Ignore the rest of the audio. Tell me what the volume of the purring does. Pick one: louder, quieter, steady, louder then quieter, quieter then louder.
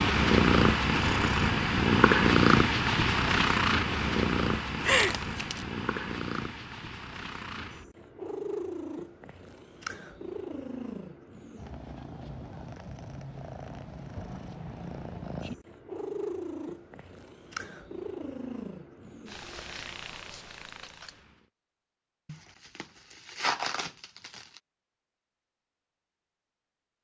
quieter.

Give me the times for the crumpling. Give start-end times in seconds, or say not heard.
4.8-5.7, 22.2-24.4.